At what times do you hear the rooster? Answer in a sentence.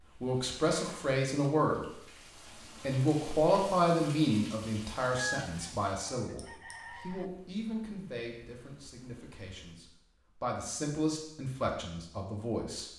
You can hear the rooster from 5.1 to 7.2 s.